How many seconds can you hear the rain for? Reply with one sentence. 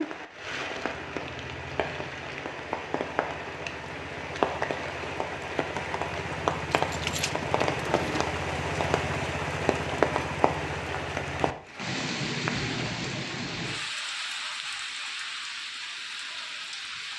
You can hear the rain for 17 seconds altogether.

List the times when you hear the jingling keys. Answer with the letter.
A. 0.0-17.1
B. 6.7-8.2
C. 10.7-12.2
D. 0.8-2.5
B.